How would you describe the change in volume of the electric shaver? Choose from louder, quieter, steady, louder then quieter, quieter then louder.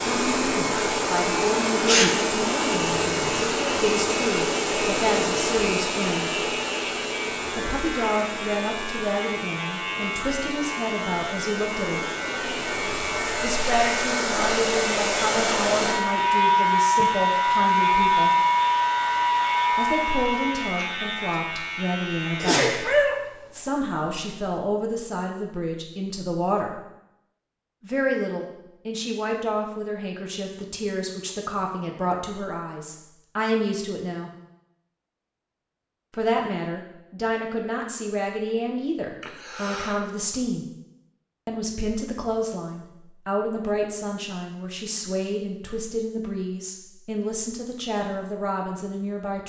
steady.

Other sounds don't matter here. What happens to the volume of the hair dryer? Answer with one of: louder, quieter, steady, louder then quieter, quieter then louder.
quieter then louder.